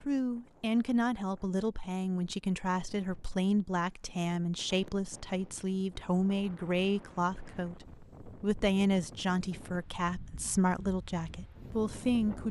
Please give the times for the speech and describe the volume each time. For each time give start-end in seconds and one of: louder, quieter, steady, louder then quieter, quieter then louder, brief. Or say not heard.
0.0-12.4 steady.